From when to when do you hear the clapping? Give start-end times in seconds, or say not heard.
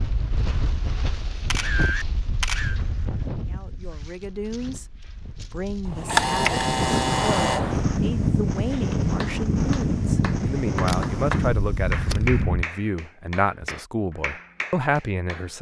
8.7-15.5.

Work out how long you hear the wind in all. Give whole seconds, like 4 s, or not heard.
13 s.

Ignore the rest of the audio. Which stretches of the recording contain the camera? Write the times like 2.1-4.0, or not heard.
1.4-2.8, 5.8-7.6, 10.8-12.4.